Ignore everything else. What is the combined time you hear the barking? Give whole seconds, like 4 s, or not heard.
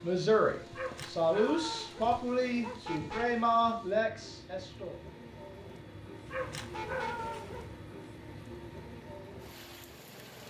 4 s.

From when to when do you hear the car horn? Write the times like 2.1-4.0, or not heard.
2.8-3.4, 6.7-7.3.